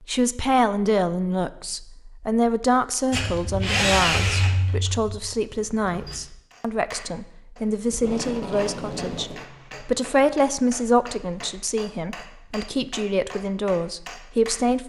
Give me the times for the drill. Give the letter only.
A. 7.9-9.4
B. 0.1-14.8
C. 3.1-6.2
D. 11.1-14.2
C.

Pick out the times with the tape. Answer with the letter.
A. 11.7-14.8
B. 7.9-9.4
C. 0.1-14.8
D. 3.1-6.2
B.